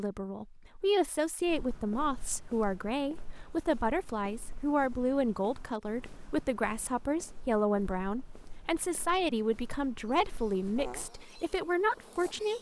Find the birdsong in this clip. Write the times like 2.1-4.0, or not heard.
not heard.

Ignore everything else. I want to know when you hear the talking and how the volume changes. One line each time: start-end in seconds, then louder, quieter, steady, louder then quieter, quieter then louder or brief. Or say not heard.
0.0-12.5 steady.